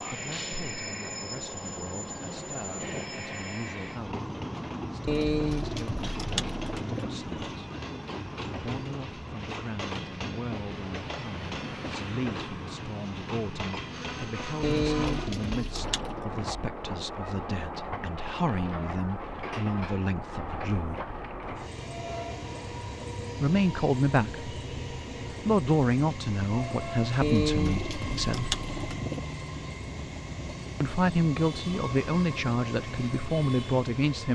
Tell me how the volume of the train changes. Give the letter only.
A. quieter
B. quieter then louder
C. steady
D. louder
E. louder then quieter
C.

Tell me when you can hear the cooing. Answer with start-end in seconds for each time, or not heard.
5.0-7.1, 14.6-16.3, 27.2-29.2.